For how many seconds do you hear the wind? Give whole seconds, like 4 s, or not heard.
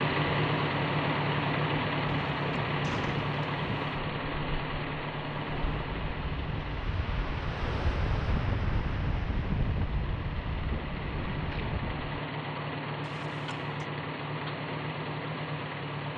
12 s.